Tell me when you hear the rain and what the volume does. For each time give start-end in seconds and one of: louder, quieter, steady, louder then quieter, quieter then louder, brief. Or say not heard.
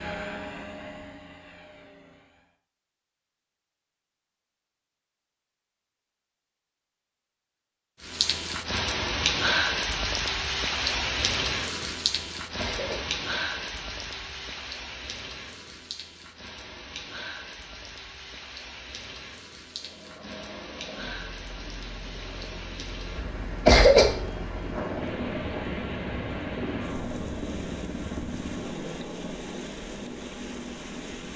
8.0-31.3 quieter.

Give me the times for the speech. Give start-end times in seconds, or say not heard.
not heard.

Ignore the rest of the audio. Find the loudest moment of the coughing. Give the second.
24 s.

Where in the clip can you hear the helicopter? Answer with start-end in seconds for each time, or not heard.
0.0-2.5, 19.7-31.3.